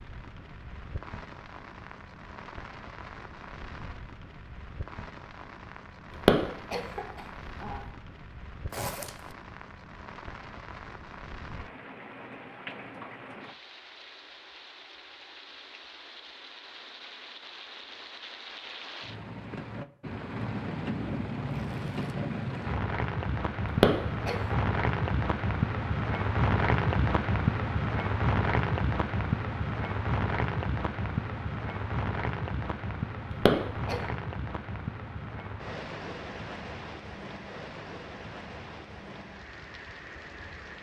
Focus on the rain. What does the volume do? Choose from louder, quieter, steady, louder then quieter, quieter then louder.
louder then quieter.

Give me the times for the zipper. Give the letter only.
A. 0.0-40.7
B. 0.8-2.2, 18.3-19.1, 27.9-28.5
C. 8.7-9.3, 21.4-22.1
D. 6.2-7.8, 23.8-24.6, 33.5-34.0
C.